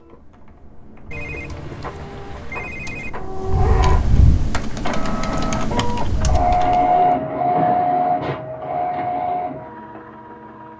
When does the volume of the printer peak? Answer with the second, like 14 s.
7 s.